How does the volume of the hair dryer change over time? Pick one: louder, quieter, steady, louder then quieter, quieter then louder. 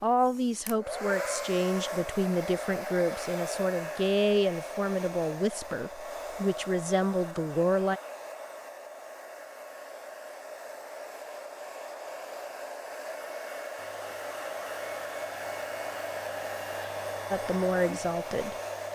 quieter then louder.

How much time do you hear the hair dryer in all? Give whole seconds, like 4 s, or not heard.
19 s.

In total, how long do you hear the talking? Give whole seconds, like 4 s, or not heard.
9 s.